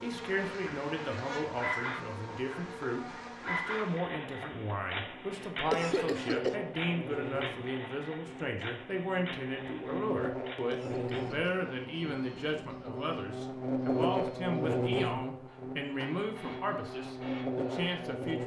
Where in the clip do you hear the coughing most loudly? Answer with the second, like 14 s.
6 s.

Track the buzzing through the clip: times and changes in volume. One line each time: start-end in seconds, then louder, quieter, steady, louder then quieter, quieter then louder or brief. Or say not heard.
0.0-18.4 louder.